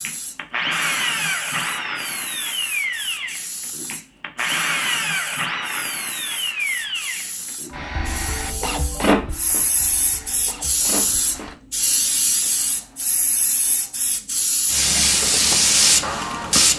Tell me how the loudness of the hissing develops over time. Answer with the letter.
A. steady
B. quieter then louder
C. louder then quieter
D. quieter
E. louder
E.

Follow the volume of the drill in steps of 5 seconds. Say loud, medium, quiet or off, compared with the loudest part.
loud, loud, quiet, medium.